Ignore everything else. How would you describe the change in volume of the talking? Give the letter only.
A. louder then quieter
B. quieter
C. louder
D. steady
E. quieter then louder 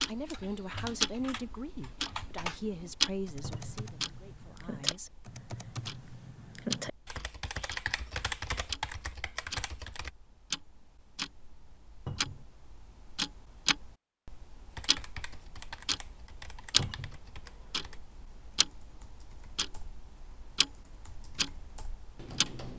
B.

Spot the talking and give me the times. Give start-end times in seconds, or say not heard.
0.1-5.2.